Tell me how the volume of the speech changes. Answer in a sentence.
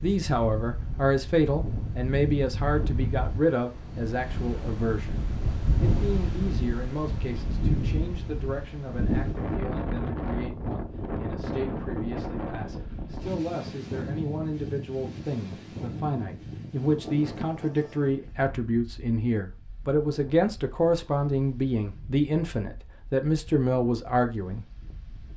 The loudness of the speech goes down, then up.